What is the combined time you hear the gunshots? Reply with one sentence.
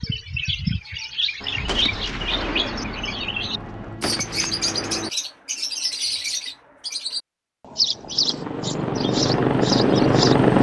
You can hear the gunshots for 4 seconds altogether.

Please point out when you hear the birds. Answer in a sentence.
The birds can be heard from 0.0 to 10.5 s.